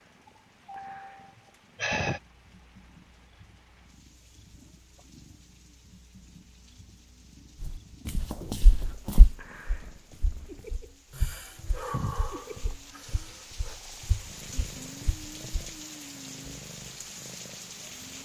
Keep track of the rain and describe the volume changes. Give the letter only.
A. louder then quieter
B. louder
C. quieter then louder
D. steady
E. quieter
B.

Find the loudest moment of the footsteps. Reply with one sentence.
The loudest moment of the footsteps is at 9 seconds.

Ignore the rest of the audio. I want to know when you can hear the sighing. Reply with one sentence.
The sighing can be heard from 0.2 to 2.2 s and from 11.2 to 13.8 s.